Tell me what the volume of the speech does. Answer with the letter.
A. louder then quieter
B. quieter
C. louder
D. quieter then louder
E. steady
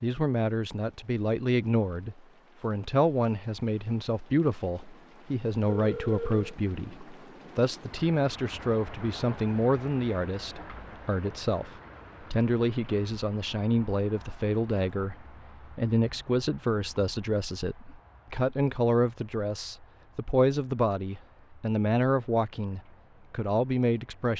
E.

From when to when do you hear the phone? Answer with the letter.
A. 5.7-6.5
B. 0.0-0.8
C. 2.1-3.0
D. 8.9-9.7
A.